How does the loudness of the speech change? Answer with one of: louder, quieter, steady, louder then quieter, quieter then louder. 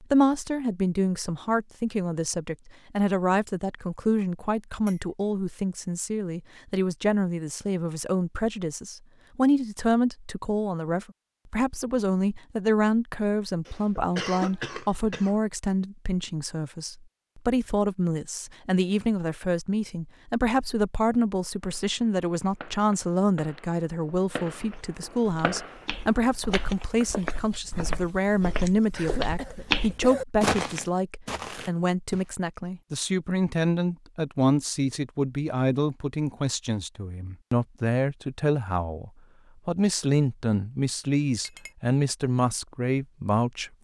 steady.